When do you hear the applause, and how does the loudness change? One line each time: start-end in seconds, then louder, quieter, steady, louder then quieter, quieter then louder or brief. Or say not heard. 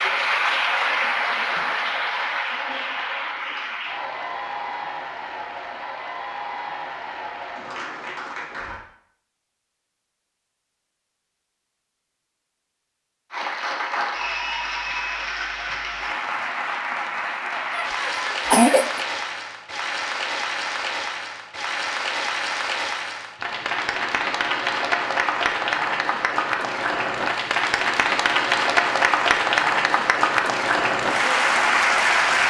0.0-8.8 quieter
13.3-32.4 louder.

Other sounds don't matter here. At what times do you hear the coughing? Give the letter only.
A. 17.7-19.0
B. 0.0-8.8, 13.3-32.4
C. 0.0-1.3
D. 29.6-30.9
A.